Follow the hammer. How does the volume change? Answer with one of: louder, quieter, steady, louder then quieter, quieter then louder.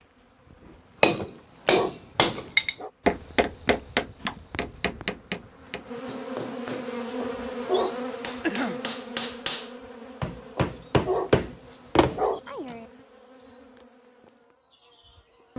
quieter then louder.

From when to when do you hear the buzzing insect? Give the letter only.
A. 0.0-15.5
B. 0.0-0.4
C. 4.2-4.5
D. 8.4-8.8
A.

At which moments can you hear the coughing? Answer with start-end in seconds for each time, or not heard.
8.4-8.8.